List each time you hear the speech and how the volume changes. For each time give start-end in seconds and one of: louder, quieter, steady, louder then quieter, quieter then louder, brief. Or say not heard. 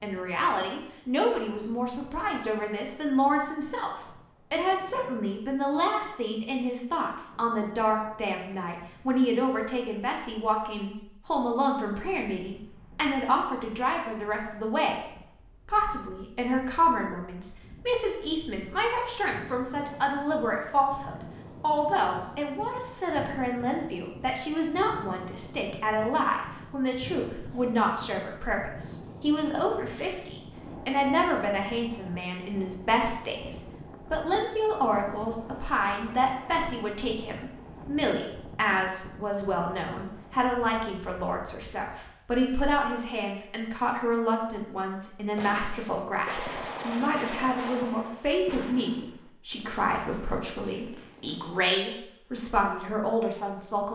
0.0-14.9 steady
15.7-53.9 steady.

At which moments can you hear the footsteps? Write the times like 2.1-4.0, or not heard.
not heard.